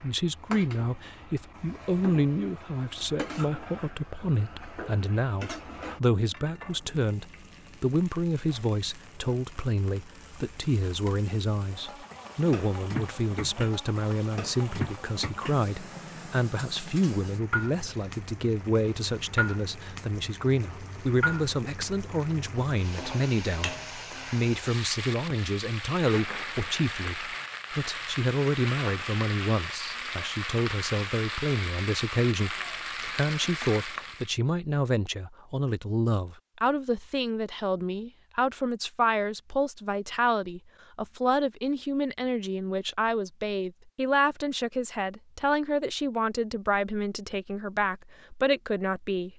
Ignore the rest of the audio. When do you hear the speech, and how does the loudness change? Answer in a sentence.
You can hear the speech from 0.0 to 49.3 s, at a steady volume.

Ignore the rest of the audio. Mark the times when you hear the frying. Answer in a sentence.
The frying can be heard from 0.0 to 34.3 s.